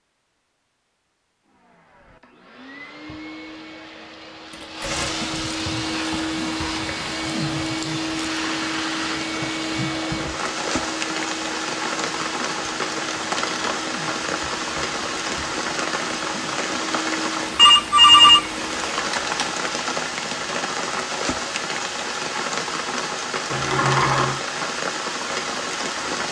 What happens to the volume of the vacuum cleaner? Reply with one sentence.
The loudness of the vacuum cleaner goes up, then down.